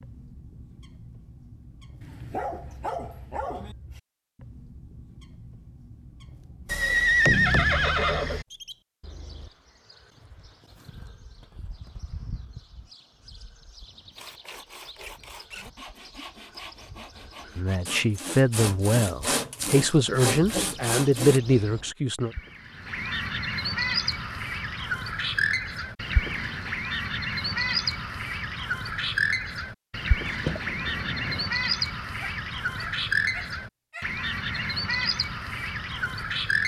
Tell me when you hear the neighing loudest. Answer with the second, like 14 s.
7 s.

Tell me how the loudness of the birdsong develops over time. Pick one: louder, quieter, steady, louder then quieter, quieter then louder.
louder.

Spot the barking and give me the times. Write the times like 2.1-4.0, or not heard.
2.0-3.8, 32.2-34.6.